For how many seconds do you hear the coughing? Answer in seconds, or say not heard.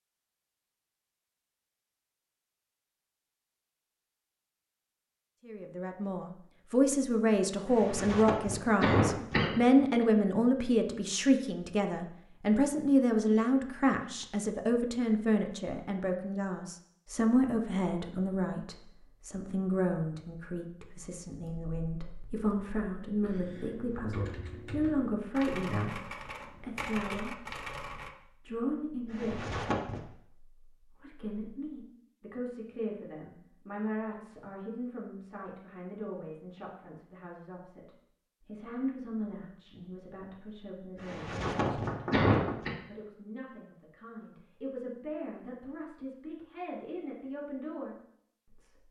5 s.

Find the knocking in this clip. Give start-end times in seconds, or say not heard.
41.5-42.6.